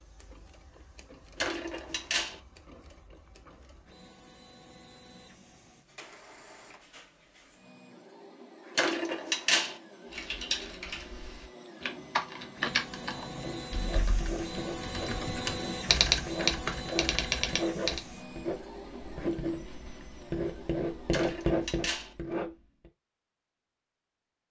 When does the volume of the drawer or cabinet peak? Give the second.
9 s.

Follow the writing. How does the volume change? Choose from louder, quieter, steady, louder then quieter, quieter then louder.
louder.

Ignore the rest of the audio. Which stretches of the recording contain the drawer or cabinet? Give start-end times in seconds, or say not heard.
1.4-2.4, 8.8-9.8, 21.1-22.1.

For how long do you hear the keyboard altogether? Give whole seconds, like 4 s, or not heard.
8 s.